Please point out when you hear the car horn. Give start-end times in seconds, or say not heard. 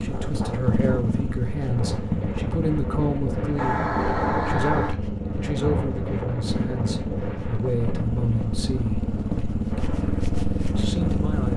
3.5-5.0.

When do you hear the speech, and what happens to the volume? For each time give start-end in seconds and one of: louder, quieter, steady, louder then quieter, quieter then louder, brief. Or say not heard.
0.0-9.1 steady
10.8-11.5 brief.